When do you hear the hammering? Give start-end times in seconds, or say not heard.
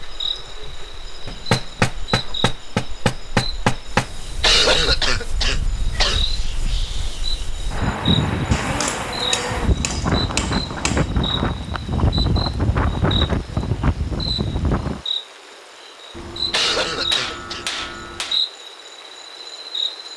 1.2-4.0, 8.5-11.1, 16.1-18.4.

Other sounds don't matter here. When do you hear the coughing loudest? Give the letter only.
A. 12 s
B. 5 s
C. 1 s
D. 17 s
B.